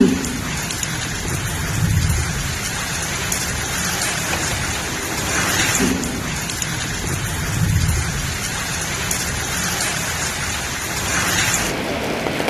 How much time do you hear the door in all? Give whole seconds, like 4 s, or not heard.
2 s.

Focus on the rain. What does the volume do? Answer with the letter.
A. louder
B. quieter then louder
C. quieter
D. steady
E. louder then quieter
D.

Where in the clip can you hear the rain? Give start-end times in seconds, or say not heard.
0.0-12.4.